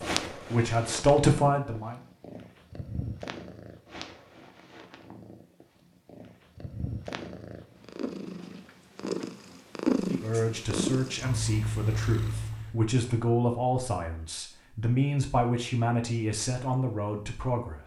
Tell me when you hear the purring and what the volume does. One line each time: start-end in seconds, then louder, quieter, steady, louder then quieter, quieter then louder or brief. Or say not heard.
0.0-12.8 louder.